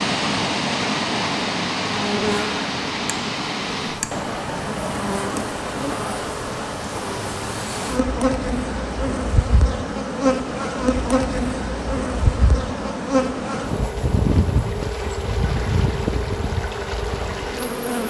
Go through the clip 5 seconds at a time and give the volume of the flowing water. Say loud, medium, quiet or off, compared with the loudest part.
loud, medium, medium, medium.